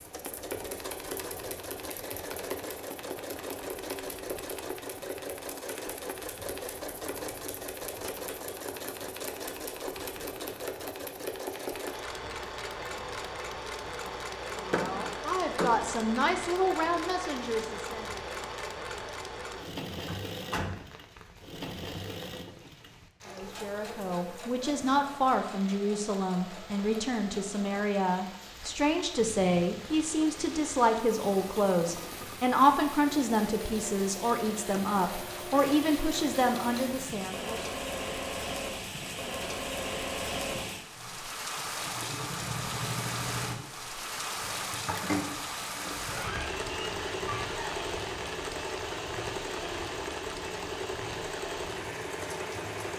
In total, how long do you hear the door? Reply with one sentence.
You can hear the door for 4 seconds altogether.